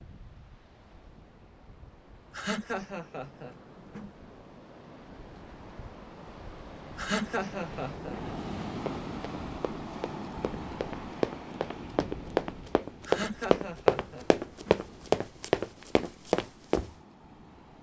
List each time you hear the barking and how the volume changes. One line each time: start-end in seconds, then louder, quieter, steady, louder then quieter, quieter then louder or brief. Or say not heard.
not heard.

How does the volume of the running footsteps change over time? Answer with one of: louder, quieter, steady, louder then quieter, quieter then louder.
louder.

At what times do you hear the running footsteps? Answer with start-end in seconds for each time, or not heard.
8.8-16.9.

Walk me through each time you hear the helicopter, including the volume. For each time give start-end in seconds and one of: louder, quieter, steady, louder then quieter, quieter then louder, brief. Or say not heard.
not heard.